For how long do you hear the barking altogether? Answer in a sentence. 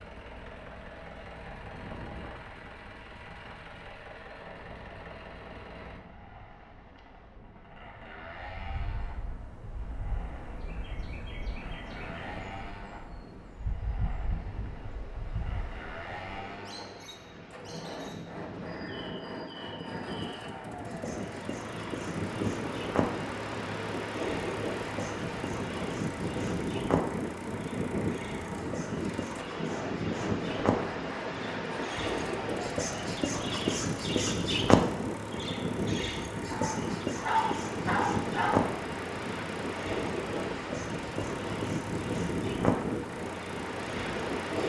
The barking can be heard for 2 seconds in total.